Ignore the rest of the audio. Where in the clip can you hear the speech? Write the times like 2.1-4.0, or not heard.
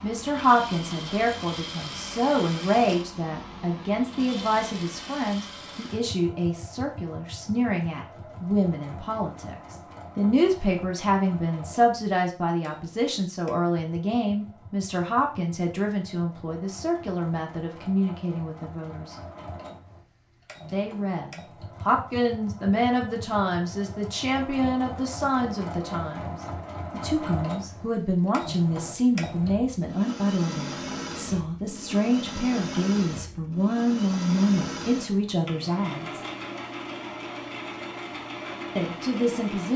0.0-19.1, 20.7-36.2, 38.8-39.7.